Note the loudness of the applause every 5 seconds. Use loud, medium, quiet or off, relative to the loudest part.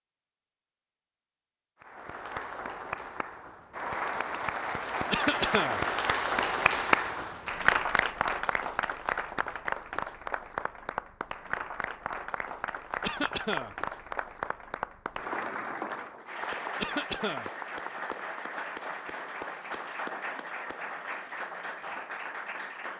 medium, loud, medium, medium, medium.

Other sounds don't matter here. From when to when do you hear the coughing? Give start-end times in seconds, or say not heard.
5.1-5.8, 13.0-13.8, 16.8-17.5.